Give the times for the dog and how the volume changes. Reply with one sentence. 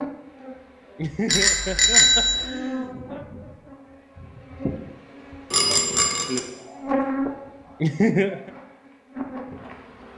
You can't hear the dog here.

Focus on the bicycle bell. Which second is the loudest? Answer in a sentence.
The loudest moment of the bicycle bell is at 2 seconds.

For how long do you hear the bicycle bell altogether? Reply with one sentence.
The bicycle bell can be heard for 2 seconds in total.